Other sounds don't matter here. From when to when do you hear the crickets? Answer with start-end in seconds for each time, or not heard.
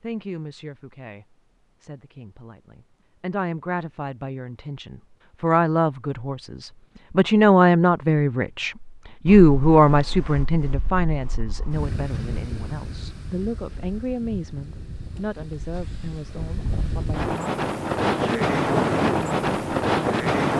not heard.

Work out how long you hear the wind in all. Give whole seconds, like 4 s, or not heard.
11 s.